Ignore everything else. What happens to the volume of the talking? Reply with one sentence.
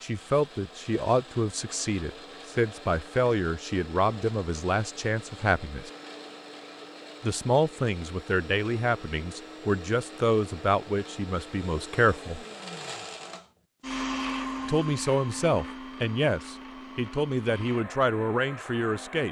The loudness of the talking stays about the same.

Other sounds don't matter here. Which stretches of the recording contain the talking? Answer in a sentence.
The talking can be heard from 0.0 to 5.9 s, from 7.2 to 12.4 s and from 14.7 to 19.2 s.